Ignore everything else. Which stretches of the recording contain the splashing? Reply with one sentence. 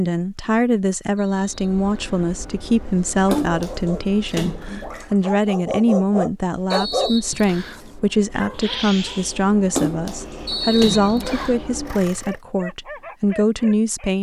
You can hear the splashing from 3.3 to 5.2 s and from 9.8 to 11.5 s.